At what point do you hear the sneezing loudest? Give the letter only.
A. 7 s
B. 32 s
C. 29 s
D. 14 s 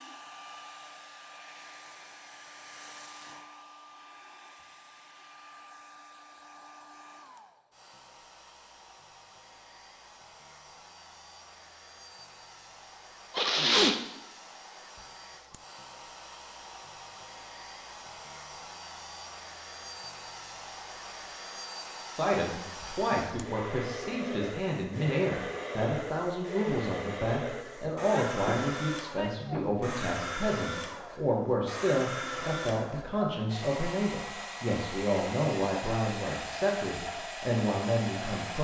D.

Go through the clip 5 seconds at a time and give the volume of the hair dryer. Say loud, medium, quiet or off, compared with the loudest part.
medium, quiet, quiet, medium, loud, loud, loud, loud.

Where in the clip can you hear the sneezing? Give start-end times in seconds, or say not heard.
13.3-14.0, 28.4-29.6.